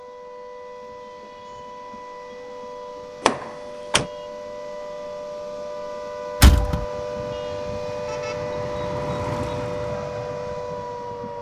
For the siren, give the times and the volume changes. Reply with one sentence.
You can hear the siren from 0.0 to 11.3 s, getting louder.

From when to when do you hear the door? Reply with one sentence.
The door can be heard from 3.2 to 4.0 s and from 6.4 to 6.8 s.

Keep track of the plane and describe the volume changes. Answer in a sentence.
The volume of the plane goes up, then down.